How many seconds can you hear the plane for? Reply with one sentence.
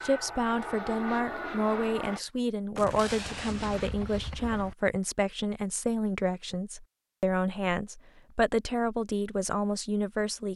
The plane can be heard for 2 seconds in total.